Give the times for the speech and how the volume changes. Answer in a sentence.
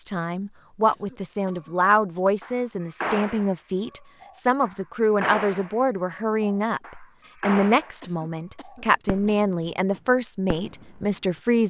You can hear the speech from 0.0 to 11.6 s, at a steady volume.